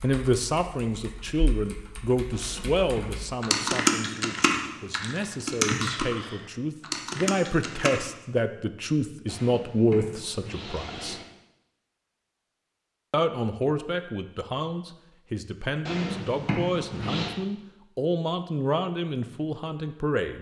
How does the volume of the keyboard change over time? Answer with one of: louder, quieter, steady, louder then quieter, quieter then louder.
louder then quieter.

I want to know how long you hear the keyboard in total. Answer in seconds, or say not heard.
8 s.